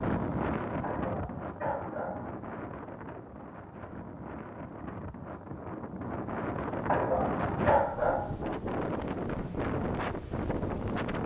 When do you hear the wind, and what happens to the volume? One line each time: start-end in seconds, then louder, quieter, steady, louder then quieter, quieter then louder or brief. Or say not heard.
0.0-11.2 quieter then louder.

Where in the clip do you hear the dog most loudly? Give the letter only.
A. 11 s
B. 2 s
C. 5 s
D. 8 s
D.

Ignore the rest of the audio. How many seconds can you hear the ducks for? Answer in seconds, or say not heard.
not heard.